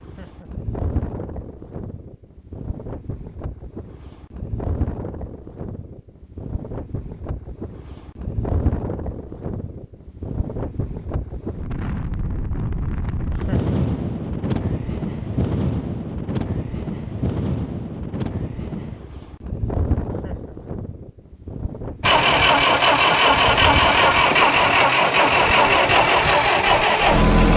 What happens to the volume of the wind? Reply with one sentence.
The loudness of the wind goes up, then down.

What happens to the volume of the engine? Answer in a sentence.
The volume of the engine stays about the same.